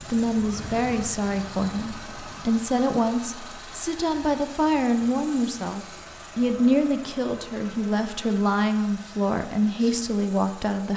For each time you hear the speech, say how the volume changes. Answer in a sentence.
You can hear the speech from 0.1 to 10.9 s, at a steady volume.